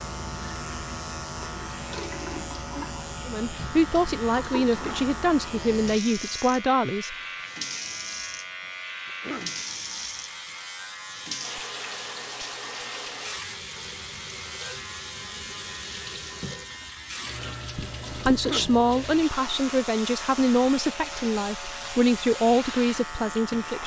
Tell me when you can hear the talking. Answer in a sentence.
The talking can be heard from 3.2 to 7.2 s and from 18.1 to 23.8 s.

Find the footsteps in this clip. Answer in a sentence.
The footsteps can't be heard in this clip.